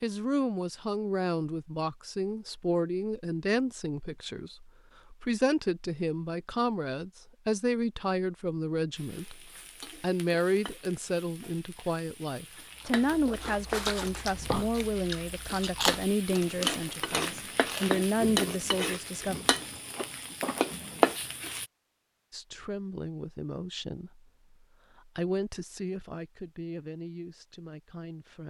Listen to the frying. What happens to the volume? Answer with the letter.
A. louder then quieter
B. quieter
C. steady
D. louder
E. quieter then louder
D.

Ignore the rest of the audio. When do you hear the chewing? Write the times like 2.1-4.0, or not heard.
12.8-20.1.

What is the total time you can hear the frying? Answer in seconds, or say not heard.
13 s.